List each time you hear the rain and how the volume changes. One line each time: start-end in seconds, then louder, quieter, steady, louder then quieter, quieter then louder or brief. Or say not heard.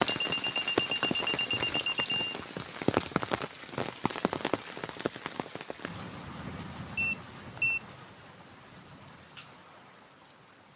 0.0-10.7 quieter.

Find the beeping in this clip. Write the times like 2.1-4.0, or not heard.
0.1-2.4, 6.9-7.8.